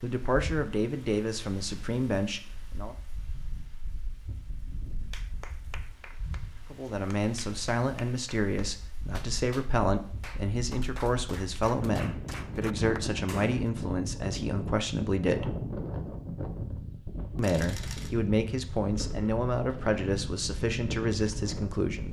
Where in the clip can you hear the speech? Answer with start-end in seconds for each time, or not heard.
0.0-3.0, 6.7-15.6, 17.4-22.0.